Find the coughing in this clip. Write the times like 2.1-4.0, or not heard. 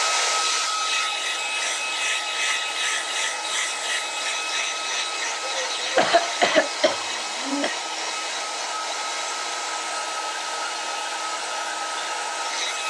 5.6-7.7.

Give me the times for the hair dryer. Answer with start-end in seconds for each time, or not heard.
0.0-12.8.